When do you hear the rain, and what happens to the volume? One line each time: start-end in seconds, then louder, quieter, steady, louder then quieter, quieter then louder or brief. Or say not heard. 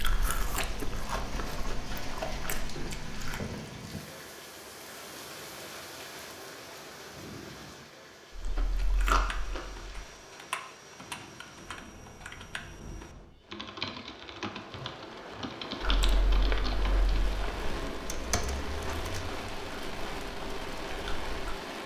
0.0-21.8 quieter then louder.